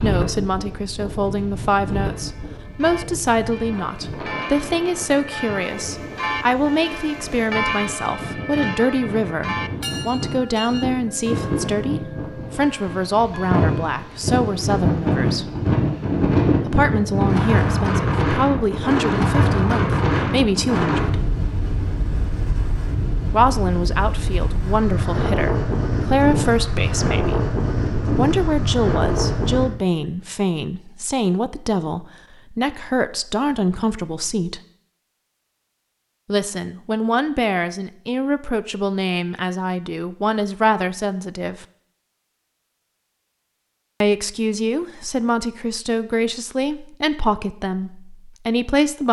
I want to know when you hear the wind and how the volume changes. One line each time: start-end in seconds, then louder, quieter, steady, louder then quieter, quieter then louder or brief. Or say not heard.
0.0-29.7 louder.